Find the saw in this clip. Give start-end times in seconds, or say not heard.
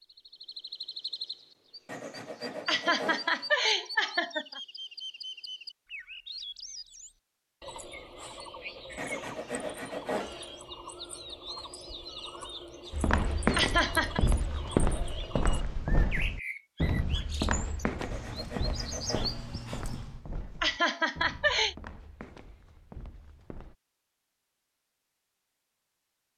1.9-3.5, 8.9-10.6, 17.9-19.9.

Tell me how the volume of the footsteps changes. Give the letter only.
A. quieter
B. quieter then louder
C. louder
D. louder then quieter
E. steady
A.